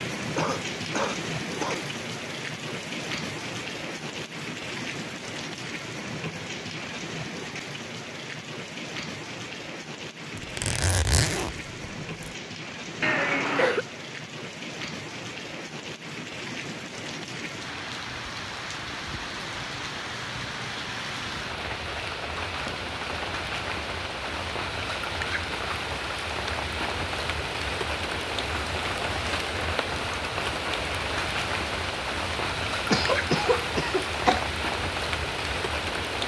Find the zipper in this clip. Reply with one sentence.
The zipper can be heard from 10.3 to 12.3 s.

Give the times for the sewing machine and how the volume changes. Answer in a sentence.
You can't hear the sewing machine here.